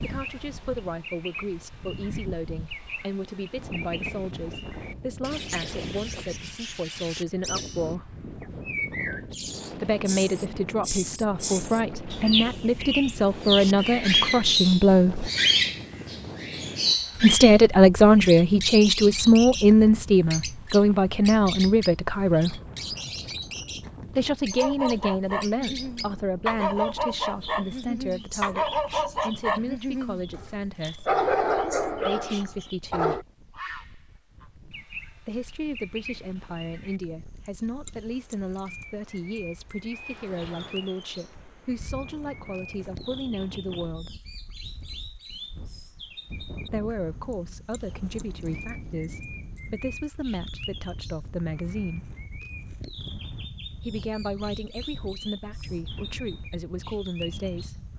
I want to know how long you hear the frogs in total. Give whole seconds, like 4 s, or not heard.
not heard.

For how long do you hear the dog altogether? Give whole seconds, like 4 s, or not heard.
9 s.